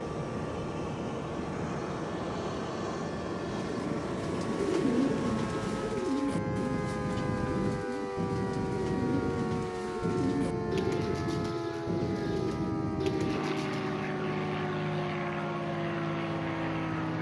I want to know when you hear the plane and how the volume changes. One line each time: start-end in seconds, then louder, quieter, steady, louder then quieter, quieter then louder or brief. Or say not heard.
0.0-17.1 steady.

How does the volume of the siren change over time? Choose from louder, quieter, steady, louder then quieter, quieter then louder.
louder.